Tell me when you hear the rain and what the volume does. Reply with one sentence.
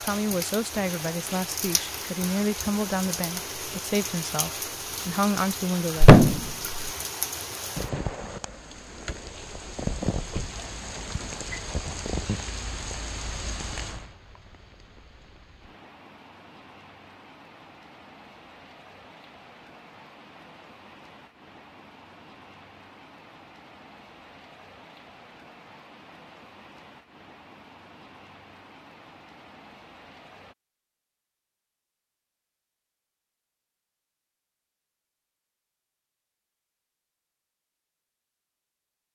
You can hear the rain from 0.0 to 30.6 s, getting quieter.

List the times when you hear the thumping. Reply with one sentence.
You can hear the thumping from 6.0 to 6.8 s.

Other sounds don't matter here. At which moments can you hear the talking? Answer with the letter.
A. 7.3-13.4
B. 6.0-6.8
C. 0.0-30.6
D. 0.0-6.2
D.